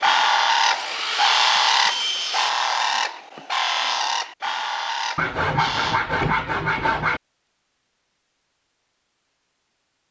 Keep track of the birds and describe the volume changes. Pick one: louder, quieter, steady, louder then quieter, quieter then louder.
quieter.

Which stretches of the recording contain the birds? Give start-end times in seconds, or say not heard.
0.0-6.0.